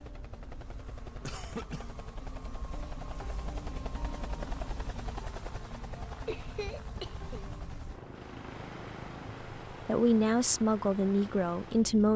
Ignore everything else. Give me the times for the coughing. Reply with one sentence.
You can hear the coughing from 1.2 to 1.9 s and from 6.2 to 7.4 s.